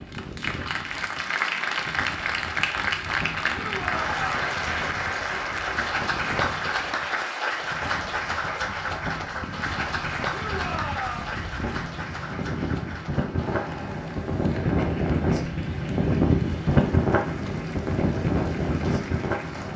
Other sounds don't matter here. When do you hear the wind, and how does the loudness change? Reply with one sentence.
The wind can be heard from 0.0 to 19.7 s, getting louder.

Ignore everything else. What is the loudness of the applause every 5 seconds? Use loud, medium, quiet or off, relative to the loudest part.
loud, loud, medium, quiet.